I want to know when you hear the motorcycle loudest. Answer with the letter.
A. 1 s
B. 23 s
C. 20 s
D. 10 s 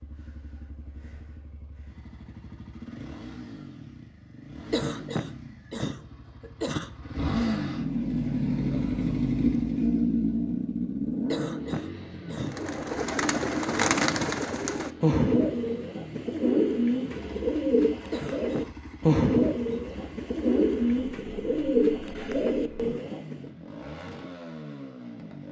D.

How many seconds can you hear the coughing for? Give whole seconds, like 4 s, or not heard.
4 s.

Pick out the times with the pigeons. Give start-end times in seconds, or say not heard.
12.4-23.4.